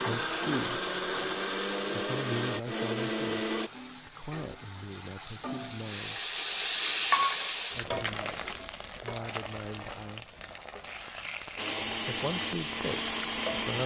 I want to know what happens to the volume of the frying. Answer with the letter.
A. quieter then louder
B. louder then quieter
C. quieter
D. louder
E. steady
B.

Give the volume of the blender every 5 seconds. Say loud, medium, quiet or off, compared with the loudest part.
loud, off, loud.